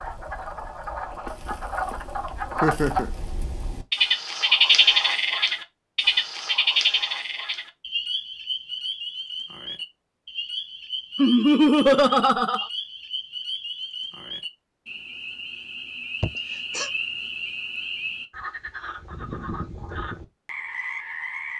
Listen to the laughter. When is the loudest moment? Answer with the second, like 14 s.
12 s.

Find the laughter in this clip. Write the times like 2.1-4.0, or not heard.
2.6-3.1, 11.2-12.7, 16.2-16.9.